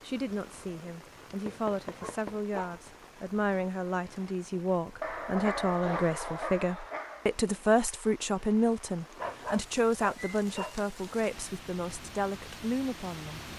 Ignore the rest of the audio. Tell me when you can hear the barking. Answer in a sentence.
You can hear the barking from 1.4 to 2.8 s, from 5.0 to 7.3 s and from 9.2 to 10.8 s.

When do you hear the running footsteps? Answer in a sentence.
You can't hear the running footsteps here.